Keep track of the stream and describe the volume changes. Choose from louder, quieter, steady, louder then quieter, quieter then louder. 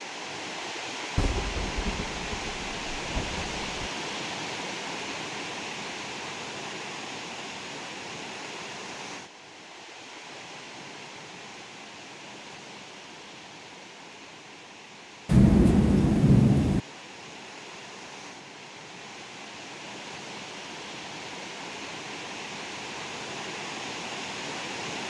quieter then louder.